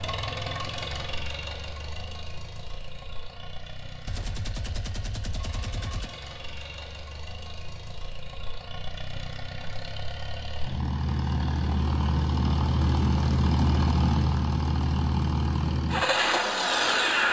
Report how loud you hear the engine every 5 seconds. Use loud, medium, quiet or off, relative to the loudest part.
quiet, quiet, loud, loud.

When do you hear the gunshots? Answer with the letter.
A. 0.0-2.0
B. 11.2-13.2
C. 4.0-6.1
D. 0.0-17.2
C.